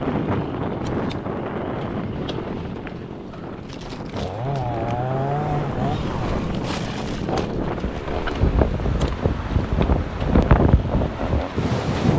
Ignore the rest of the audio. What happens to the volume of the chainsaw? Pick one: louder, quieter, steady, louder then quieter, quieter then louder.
louder then quieter.